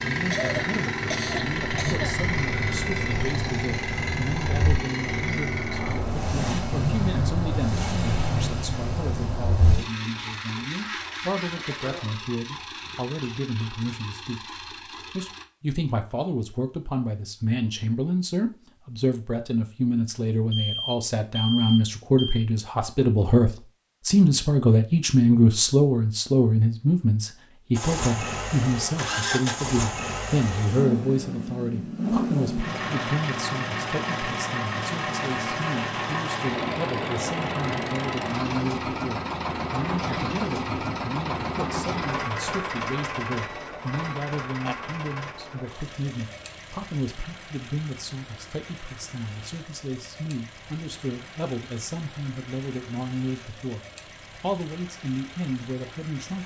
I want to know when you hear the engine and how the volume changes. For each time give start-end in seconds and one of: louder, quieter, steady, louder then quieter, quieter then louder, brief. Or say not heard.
0.0-15.4 quieter
27.8-56.4 quieter.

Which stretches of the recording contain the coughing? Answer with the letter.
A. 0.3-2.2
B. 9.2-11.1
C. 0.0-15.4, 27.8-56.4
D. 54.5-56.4
A.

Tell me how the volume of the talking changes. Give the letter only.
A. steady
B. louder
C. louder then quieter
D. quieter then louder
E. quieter
C.